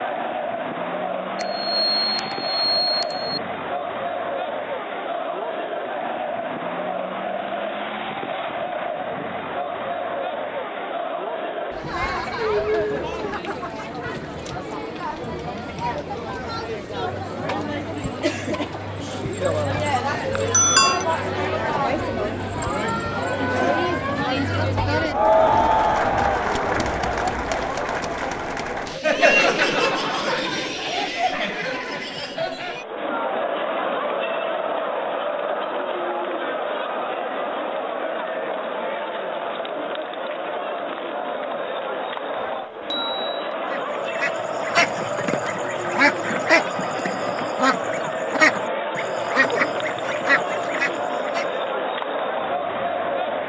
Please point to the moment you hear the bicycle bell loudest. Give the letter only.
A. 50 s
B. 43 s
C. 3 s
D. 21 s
D.